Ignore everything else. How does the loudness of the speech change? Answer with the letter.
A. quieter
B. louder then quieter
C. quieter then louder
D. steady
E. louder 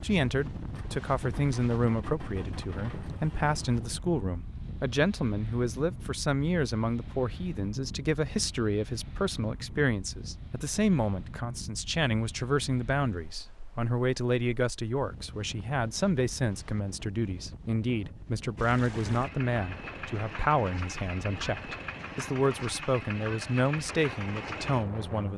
D.